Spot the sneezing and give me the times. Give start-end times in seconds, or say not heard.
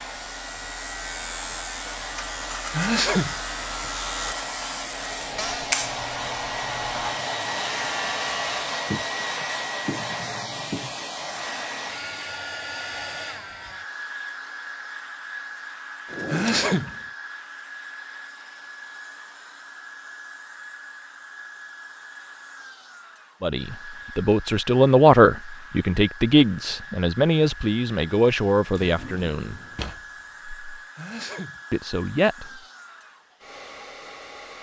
2.7-3.4, 16.1-16.9, 30.8-31.6.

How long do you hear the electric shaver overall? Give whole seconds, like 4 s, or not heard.
9 s.